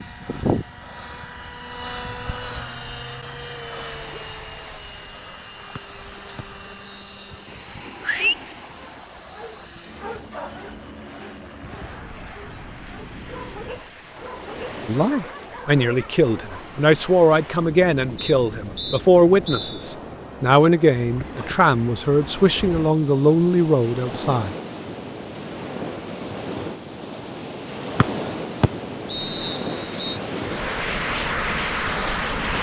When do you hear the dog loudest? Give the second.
8 s.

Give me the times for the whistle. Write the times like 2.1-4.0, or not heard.
5.8-7.2, 18.1-19.9, 28.0-30.1.